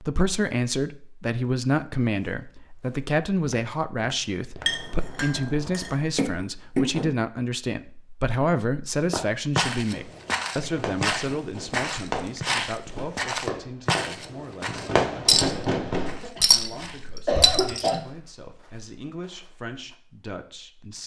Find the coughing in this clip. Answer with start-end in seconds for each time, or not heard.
6.2-7.1, 16.1-16.6, 17.2-18.0.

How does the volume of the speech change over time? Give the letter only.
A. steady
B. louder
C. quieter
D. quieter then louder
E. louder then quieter
C.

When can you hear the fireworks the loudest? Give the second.
15 s.